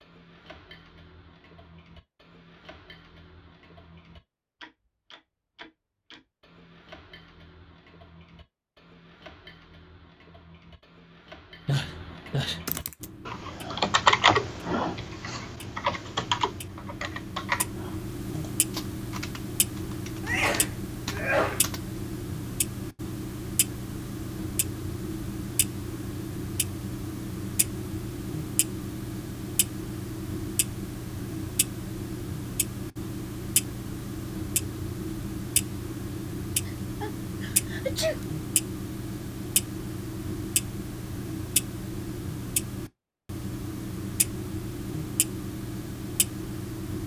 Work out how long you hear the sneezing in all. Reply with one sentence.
You can hear the sneezing for 4 seconds altogether.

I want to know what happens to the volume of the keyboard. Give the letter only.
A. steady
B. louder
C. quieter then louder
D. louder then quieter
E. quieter
E.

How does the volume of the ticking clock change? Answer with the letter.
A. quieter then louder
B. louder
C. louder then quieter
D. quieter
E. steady
B.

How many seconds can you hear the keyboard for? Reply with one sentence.
You can hear the keyboard for 9 seconds altogether.